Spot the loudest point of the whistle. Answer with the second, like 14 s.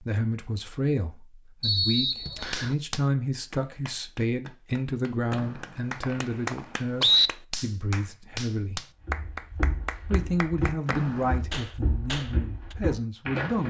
7 s.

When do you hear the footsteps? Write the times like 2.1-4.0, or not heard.
9.1-13.6.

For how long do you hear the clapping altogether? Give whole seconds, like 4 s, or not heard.
10 s.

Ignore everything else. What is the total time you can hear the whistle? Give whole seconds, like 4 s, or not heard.
4 s.